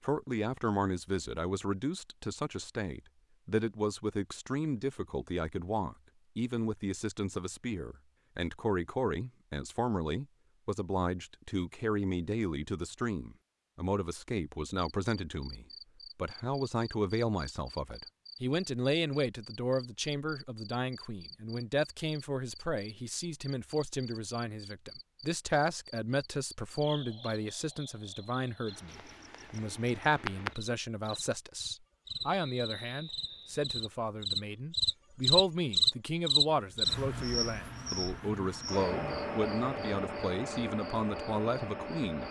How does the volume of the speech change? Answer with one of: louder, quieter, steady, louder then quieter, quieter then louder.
steady.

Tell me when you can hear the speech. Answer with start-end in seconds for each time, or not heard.
0.0-42.2.